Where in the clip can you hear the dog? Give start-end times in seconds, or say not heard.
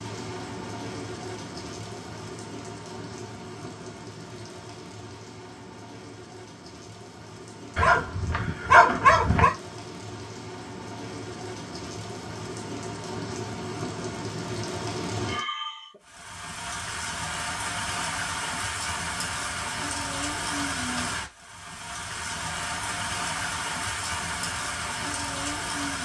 7.8-9.5.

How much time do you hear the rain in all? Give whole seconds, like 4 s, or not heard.
26 s.